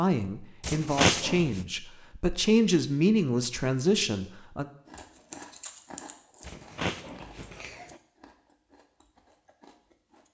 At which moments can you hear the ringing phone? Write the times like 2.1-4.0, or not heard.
not heard.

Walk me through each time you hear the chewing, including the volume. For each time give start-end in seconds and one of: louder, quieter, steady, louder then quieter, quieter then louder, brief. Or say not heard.
4.8-10.2 quieter.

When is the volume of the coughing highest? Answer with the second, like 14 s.
1 s.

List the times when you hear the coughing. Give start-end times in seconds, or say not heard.
0.6-1.6, 6.4-8.0.